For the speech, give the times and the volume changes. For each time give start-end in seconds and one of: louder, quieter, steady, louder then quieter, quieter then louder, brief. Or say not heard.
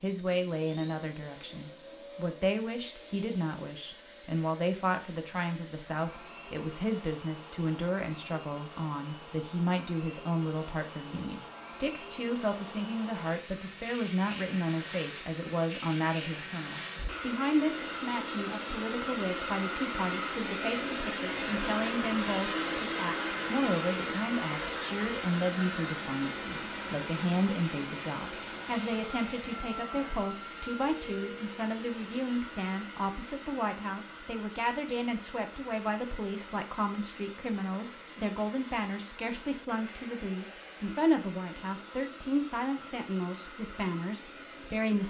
0.0-45.0 steady.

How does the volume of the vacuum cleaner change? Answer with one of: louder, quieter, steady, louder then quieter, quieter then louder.
louder then quieter.